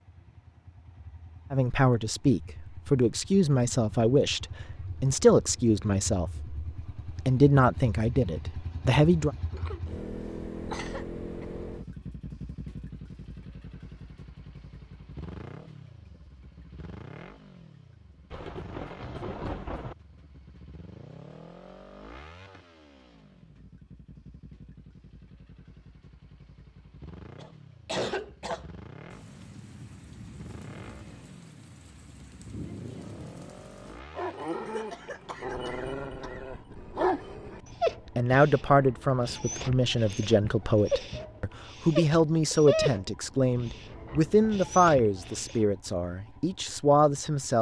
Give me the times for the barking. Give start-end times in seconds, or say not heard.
34.1-45.8.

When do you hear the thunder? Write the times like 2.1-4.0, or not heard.
18.3-19.9, 29.1-34.0.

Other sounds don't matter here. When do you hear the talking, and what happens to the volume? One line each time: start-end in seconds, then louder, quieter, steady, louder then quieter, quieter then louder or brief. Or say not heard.
1.5-9.3 steady
38.1-47.5 steady.